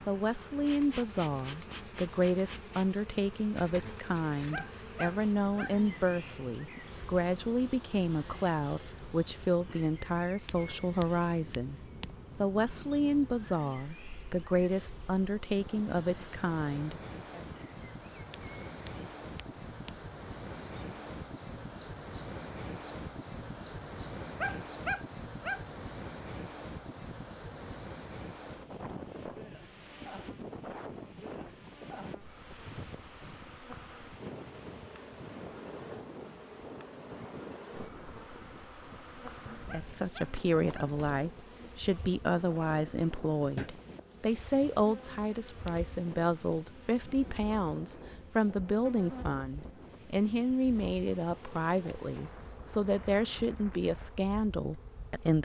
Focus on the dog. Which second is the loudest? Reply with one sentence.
The volume of the dog peaks at 25 seconds.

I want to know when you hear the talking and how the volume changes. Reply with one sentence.
You can hear the talking from 0.1 to 17.4 s, at a steady volume; and from 39.5 to 55.4 s, at a steady volume.